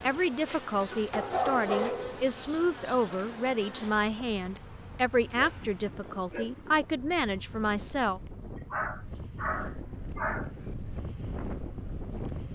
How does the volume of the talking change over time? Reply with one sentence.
The volume of the talking stays about the same.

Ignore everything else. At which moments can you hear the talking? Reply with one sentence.
You can hear the talking from 0.0 to 8.2 s.